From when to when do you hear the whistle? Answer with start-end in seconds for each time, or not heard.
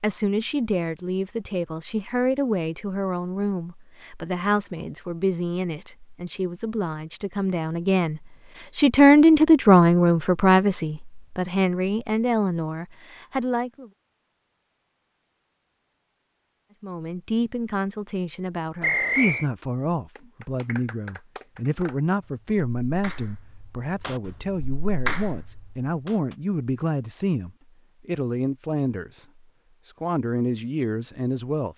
18.8-19.4.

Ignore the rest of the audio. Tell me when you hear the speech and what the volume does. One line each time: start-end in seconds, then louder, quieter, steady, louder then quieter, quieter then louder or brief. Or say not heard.
0.0-13.9 louder then quieter
16.8-29.2 steady
29.9-31.7 brief.